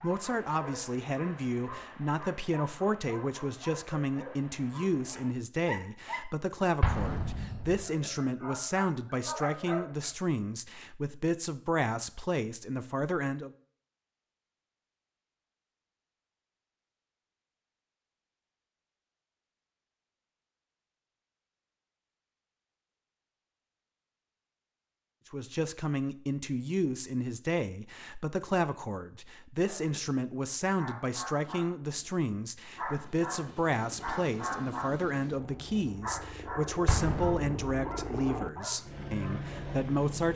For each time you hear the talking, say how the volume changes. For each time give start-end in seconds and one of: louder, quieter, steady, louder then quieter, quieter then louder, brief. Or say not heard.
0.0-13.5 steady
25.3-40.3 steady.